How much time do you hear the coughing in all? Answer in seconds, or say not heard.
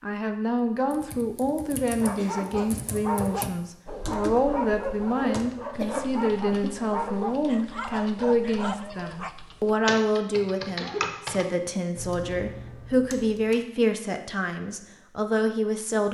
2 s.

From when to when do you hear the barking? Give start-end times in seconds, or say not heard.
1.9-9.3.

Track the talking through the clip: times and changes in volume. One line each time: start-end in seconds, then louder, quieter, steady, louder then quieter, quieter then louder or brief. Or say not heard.
0.0-16.0 steady.